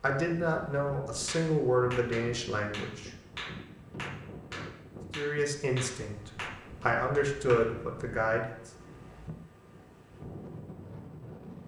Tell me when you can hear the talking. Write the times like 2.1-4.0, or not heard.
0.0-3.1, 5.2-8.7.